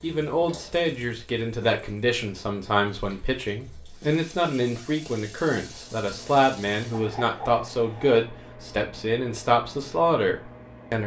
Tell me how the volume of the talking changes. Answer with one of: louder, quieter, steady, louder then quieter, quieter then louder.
steady.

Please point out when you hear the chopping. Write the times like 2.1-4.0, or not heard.
not heard.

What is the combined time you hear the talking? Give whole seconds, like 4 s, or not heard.
11 s.